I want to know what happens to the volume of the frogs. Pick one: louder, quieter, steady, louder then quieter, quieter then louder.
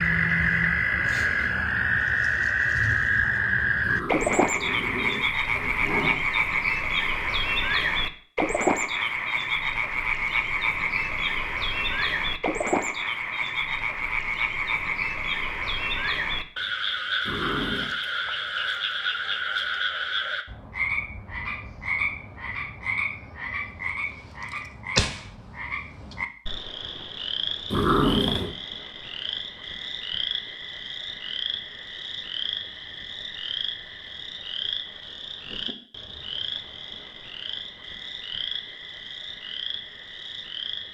quieter.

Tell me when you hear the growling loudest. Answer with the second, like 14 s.
28 s.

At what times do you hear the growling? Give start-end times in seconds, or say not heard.
3.8-6.2, 17.2-17.9, 27.7-28.5.